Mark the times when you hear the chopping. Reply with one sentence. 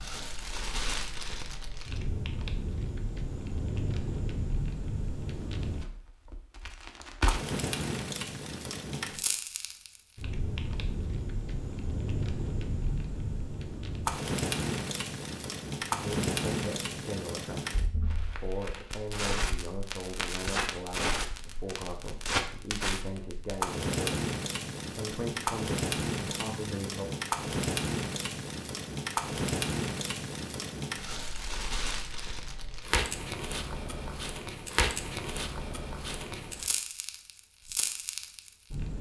The chopping can be heard from 20.4 to 20.8 s.